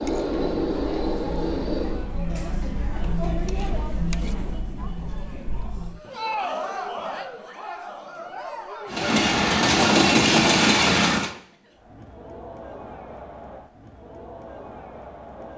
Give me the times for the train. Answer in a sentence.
The train can be heard from 0.0 to 2.1 s and from 8.8 to 11.3 s.